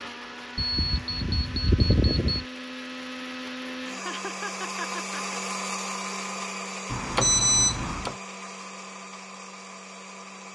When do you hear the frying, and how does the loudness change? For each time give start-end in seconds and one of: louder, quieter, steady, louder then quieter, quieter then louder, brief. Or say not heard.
not heard.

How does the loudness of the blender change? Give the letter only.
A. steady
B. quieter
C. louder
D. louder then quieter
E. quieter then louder
D.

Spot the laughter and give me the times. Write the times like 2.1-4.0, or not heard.
4.0-5.4.